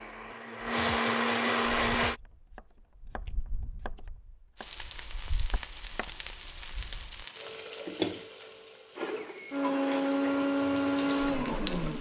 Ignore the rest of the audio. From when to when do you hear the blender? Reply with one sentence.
You can hear the blender from 0.0 to 2.2 s and from 8.9 to 11.9 s.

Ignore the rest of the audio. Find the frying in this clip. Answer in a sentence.
The frying can be heard from 4.5 to 11.9 s.